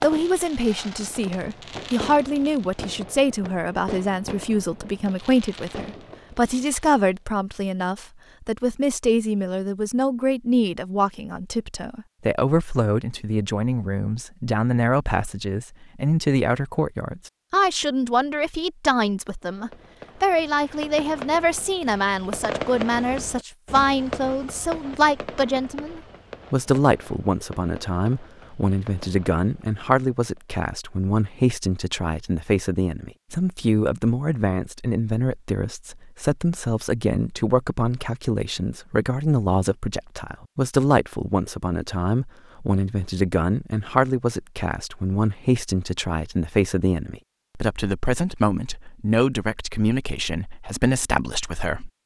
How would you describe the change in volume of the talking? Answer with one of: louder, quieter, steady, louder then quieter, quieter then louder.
steady.